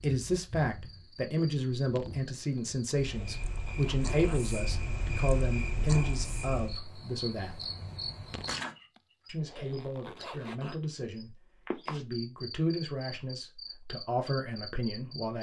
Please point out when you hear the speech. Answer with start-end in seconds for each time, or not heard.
0.0-7.7, 9.2-15.3.